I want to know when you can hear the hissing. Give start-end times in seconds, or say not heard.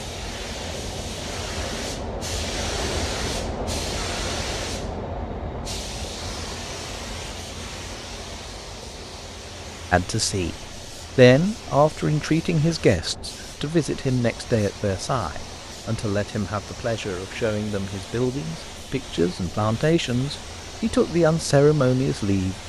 0.0-22.6.